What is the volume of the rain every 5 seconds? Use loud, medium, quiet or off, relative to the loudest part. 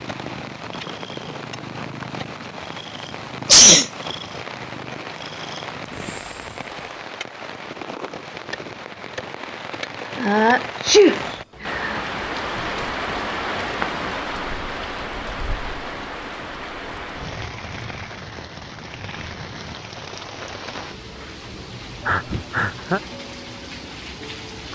medium, medium, loud, medium, medium.